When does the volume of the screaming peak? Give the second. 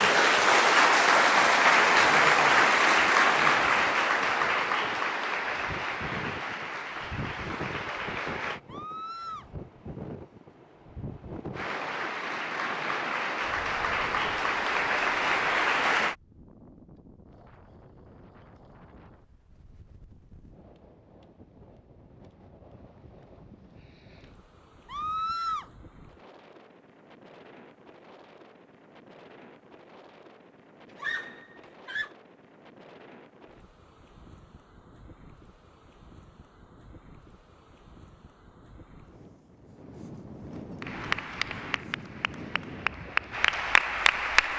25 s.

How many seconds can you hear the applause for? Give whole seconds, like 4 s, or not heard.
17 s.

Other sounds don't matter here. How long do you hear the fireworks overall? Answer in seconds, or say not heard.
not heard.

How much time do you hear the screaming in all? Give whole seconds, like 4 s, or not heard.
3 s.